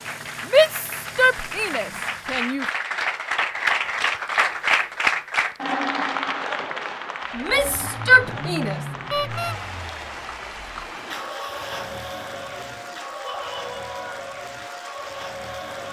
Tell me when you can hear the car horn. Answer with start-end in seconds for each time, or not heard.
9.1-9.6.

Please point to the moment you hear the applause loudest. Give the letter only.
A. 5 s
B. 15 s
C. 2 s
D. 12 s
A.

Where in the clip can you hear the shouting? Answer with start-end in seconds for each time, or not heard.
0.5-2.6, 7.3-8.8, 13.2-14.0.